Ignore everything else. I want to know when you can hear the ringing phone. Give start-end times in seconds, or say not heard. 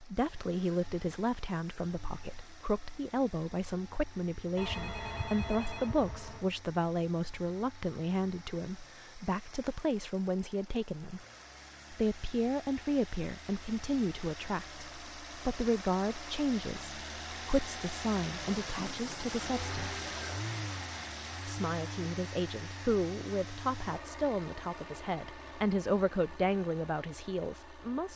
4.5-6.5, 18.6-20.4.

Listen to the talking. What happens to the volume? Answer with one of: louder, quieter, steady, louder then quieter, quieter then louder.
steady.